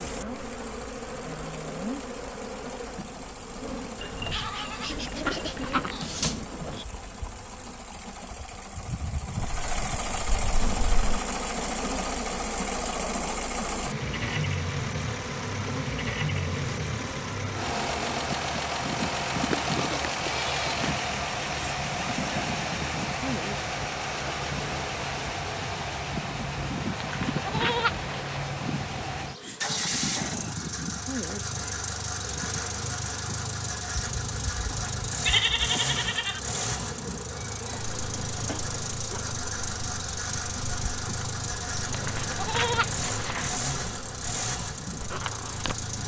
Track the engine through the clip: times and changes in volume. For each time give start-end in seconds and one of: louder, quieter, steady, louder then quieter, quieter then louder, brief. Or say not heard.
0.0-46.0 louder.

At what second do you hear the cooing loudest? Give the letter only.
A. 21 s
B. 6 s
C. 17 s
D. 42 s
B.